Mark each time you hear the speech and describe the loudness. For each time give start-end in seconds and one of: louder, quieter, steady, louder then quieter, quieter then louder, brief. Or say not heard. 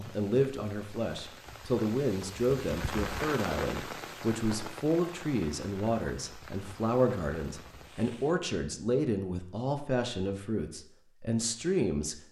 0.0-12.2 steady.